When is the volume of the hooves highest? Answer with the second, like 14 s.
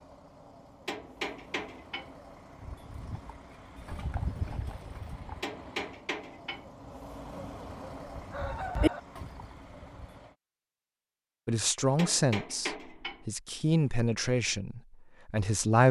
9 s.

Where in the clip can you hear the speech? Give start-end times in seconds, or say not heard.
11.4-15.8.